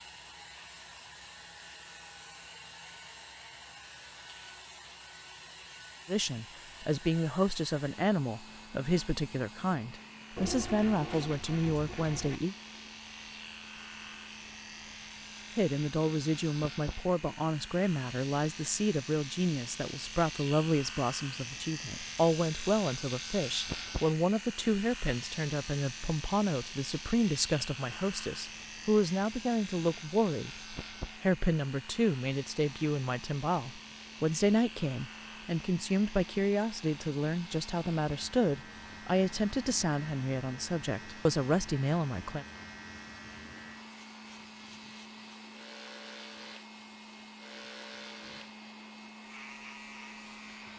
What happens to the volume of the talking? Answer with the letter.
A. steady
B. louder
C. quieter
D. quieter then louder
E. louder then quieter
A.